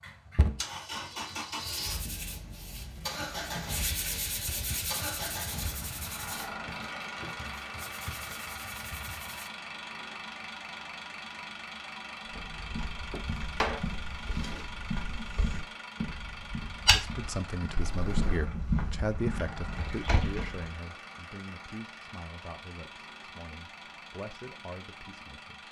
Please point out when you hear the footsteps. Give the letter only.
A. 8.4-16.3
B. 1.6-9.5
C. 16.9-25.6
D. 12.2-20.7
D.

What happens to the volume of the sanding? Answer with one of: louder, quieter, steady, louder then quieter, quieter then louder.
louder then quieter.